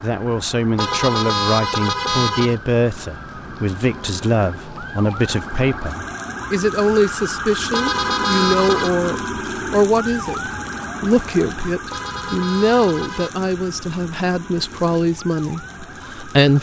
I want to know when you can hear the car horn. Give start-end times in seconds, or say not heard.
0.8-2.6, 7.7-8.9, 11.9-13.3.